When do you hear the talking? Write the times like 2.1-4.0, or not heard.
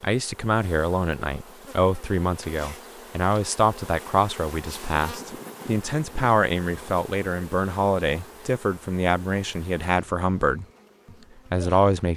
0.0-10.7, 11.5-12.1.